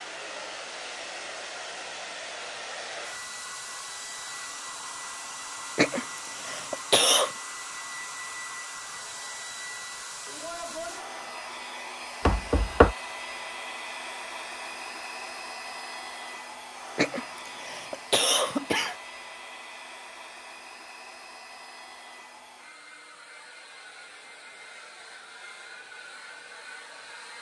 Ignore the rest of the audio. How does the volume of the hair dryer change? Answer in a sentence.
The volume of the hair dryer goes down.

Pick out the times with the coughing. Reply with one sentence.
You can hear the coughing from 5.8 to 7.3 s and from 16.9 to 18.9 s.